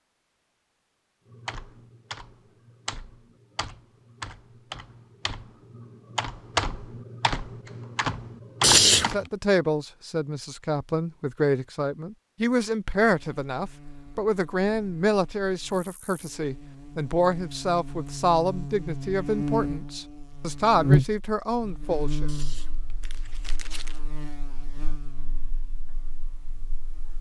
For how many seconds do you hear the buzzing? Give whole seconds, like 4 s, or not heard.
14 s.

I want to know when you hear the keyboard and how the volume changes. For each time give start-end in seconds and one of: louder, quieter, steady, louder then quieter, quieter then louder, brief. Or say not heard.
1.2-9.2 louder.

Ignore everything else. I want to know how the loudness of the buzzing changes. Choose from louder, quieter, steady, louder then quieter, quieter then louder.
louder then quieter.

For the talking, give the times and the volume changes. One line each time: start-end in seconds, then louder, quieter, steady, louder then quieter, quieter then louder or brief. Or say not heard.
9.0-22.2 steady.